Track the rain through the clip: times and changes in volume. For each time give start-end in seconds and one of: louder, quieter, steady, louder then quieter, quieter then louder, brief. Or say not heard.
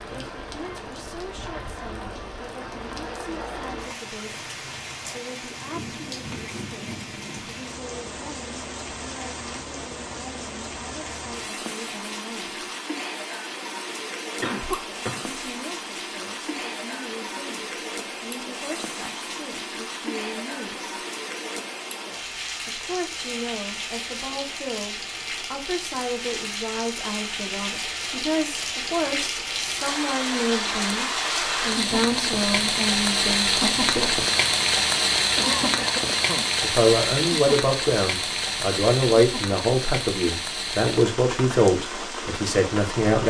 0.0-43.2 louder.